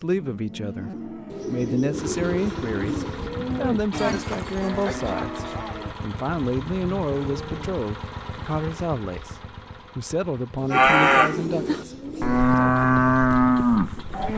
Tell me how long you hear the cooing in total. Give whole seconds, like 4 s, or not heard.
4 s.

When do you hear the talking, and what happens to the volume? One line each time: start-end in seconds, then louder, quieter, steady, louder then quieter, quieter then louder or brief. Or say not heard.
0.0-9.3 steady
9.9-12.8 brief.